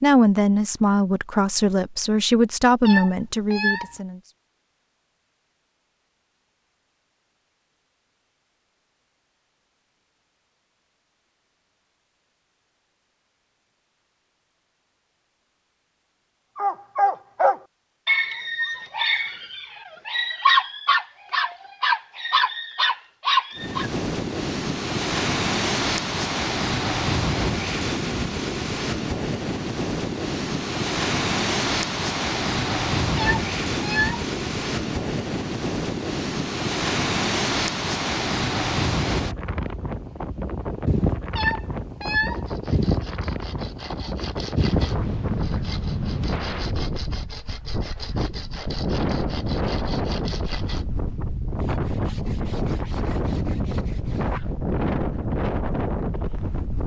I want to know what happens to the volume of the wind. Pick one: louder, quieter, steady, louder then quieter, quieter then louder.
steady.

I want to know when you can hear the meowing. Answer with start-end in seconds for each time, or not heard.
2.9-3.9, 33.1-34.2, 41.4-42.4.